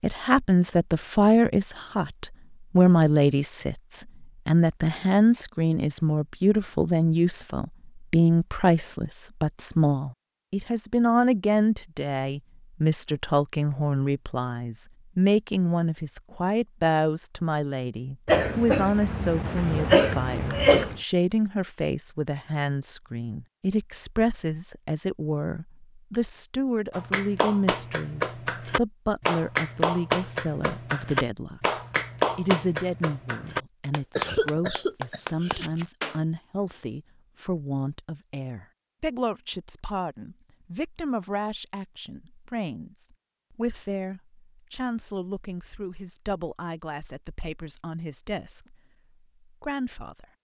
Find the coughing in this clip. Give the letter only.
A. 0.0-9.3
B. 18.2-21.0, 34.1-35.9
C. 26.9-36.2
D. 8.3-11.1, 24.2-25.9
B.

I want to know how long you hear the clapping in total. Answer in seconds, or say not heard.
9 s.